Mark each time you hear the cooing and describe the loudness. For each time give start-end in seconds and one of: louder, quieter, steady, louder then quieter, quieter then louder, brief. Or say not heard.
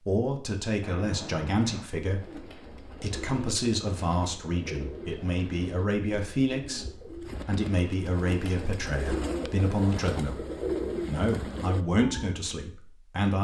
2.0-12.4 louder.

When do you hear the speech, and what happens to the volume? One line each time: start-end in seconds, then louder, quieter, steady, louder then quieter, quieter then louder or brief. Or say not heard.
0.1-10.4 steady
11.1-13.3 brief.